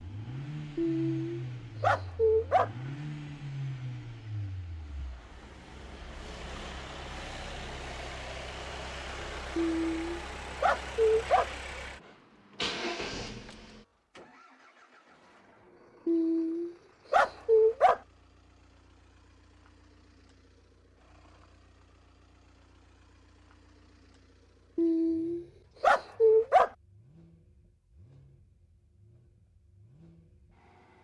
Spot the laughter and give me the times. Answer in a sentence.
The laughter can't be heard in this clip.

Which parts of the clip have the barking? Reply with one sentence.
The barking can be heard from 0.8 to 2.7 s, from 9.6 to 11.5 s, from 16.1 to 18.0 s and from 24.8 to 26.7 s.